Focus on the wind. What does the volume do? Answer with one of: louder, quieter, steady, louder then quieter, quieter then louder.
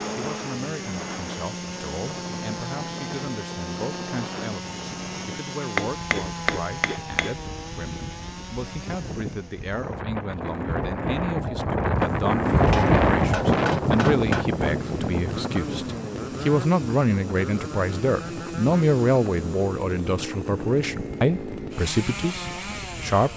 louder then quieter.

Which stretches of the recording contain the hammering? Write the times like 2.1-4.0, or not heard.
5.8-7.3, 12.7-14.4.